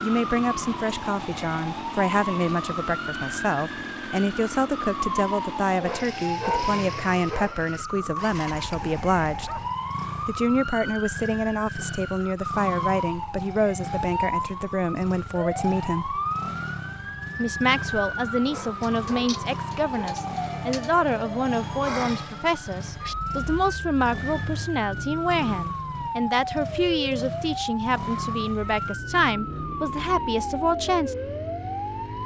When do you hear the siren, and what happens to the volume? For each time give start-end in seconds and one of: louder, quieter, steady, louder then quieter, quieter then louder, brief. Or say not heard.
0.0-32.2 steady.